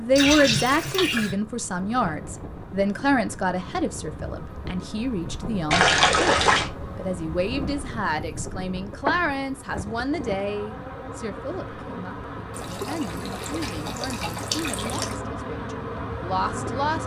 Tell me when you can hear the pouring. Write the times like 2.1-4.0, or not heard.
0.1-1.4, 5.7-6.7, 12.6-15.2.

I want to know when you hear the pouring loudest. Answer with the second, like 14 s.
6 s.